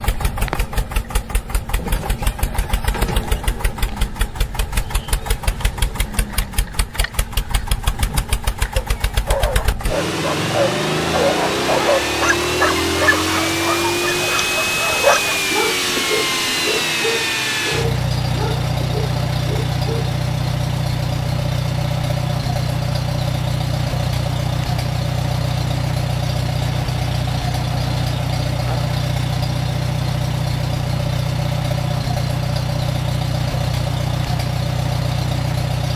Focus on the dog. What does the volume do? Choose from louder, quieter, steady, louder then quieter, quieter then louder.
quieter.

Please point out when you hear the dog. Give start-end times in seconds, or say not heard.
8.8-20.2.